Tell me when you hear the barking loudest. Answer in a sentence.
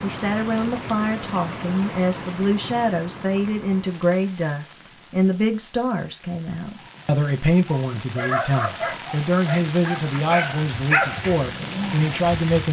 The loudest moment of the barking is at 11 seconds.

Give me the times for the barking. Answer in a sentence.
You can hear the barking from 7.8 to 12.4 s.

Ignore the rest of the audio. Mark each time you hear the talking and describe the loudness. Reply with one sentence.
You can hear the talking from 0.0 to 12.6 s, at a steady volume.